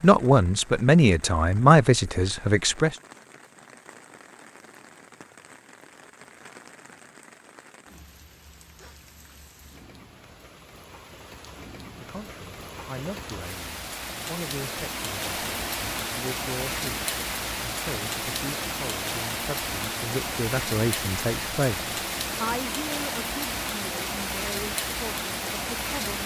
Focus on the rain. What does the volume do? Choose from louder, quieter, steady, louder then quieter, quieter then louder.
louder.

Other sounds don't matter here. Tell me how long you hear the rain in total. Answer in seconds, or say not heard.
26 s.